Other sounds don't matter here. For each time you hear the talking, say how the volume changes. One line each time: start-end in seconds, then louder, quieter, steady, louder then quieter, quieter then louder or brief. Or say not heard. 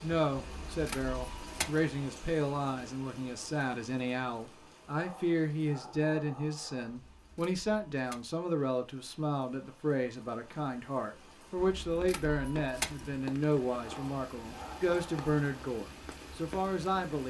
0.0-17.2 steady.